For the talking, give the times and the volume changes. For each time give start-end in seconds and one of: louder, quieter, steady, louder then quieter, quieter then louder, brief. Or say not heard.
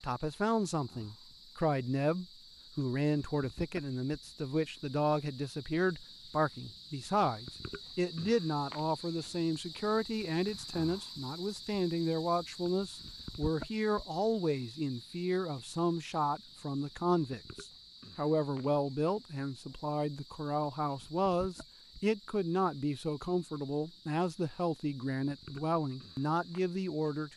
0.0-27.3 steady.